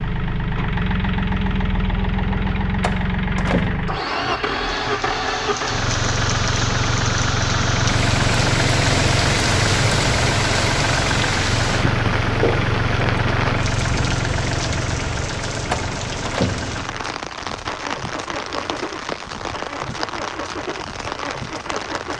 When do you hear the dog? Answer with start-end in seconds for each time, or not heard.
not heard.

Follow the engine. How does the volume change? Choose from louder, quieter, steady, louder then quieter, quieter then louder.
quieter.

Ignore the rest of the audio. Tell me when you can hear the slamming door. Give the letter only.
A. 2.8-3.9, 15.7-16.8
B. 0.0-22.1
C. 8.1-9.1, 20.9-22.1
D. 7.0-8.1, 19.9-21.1
A.